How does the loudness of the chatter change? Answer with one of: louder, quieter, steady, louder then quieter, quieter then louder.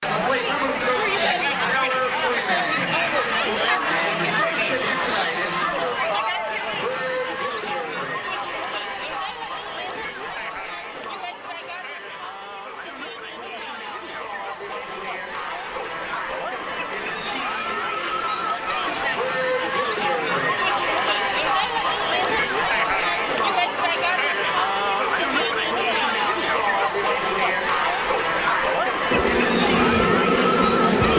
quieter then louder.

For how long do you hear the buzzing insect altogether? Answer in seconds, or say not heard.
2 s.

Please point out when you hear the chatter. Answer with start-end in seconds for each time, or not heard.
0.0-31.1.